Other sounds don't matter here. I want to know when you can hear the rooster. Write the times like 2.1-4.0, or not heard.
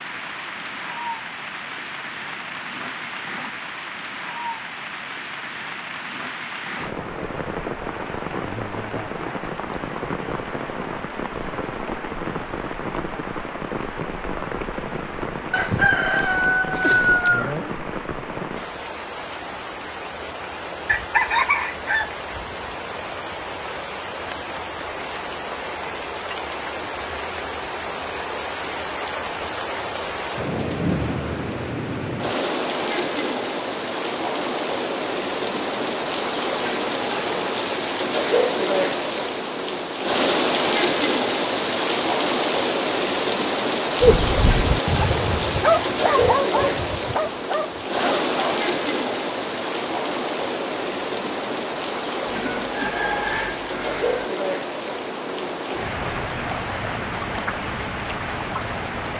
15.5-17.6, 20.9-22.6, 52.2-54.3.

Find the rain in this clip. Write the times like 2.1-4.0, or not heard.
0.0-59.1.